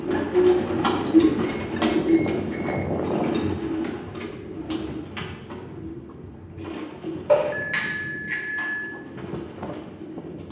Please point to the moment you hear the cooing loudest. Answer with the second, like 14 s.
1 s.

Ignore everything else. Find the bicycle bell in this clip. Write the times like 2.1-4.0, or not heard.
1.4-2.9, 7.2-8.9.